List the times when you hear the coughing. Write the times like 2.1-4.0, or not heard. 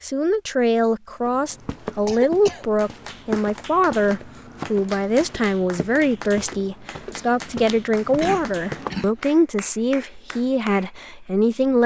1.4-2.6, 8.2-9.3.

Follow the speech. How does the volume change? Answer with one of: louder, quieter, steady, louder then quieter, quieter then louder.
steady.